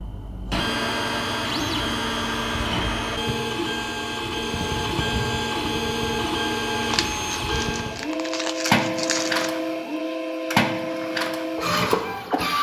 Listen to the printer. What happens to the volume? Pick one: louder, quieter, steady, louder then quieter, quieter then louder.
steady.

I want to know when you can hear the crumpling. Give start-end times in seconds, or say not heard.
6.8-9.5.